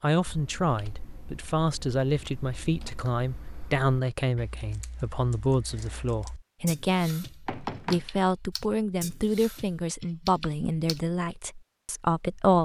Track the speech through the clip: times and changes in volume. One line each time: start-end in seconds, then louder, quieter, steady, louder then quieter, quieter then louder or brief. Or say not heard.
0.0-12.5 steady.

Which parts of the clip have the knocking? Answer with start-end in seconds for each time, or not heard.
7.5-8.1.